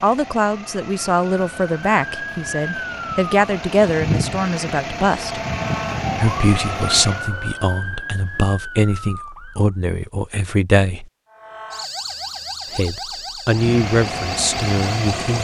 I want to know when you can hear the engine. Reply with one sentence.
The engine can be heard from 0.0 to 7.3 s and from 13.5 to 15.3 s.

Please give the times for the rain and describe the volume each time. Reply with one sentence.
You can't hear the rain here.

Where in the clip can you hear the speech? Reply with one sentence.
The speech can be heard from 0.0 to 5.4 s, from 6.2 to 11.1 s and from 12.8 to 15.3 s.